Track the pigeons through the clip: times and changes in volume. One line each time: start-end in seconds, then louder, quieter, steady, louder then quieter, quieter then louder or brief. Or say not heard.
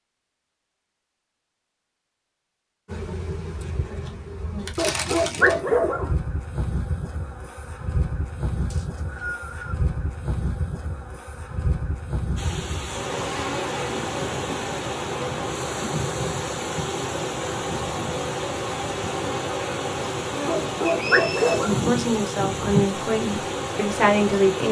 not heard.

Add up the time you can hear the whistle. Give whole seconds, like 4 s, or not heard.
2 s.